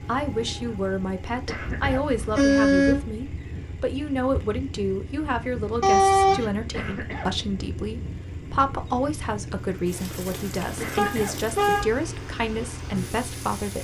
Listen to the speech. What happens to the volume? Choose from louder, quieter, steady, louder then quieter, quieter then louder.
steady.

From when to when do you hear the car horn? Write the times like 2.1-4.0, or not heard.
2.0-3.0, 5.8-6.5, 10.9-11.8.